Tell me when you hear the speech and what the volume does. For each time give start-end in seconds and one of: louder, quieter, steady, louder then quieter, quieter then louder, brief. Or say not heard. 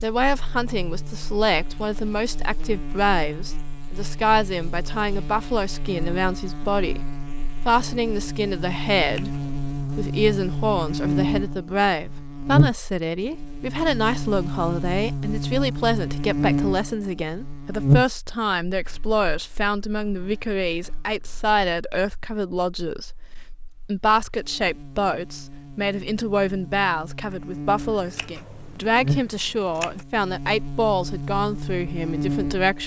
0.0-23.1 steady
23.9-32.8 steady.